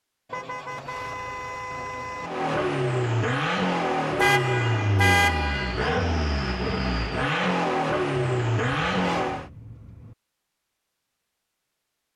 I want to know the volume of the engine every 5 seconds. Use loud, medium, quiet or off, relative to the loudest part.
loud, loud, off.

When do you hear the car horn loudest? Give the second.
5 s.